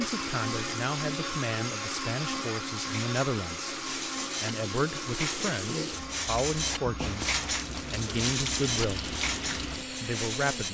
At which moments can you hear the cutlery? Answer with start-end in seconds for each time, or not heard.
2.8-10.6.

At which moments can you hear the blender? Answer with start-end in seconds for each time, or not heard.
0.0-10.6.